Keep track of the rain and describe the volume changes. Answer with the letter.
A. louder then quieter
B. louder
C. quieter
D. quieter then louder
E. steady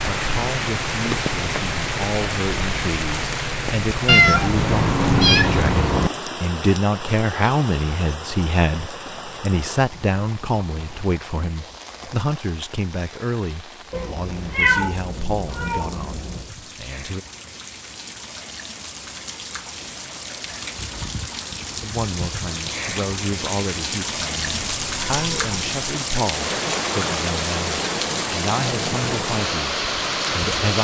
D.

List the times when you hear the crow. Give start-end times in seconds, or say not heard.
not heard.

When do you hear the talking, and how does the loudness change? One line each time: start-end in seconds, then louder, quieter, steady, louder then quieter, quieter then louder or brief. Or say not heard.
0.1-17.2 louder then quieter
21.8-30.7 steady.